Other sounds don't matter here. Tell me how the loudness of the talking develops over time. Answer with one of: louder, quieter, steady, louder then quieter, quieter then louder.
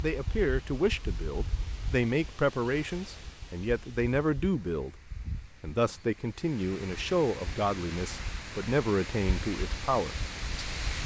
steady.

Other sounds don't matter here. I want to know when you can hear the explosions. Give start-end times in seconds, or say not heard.
not heard.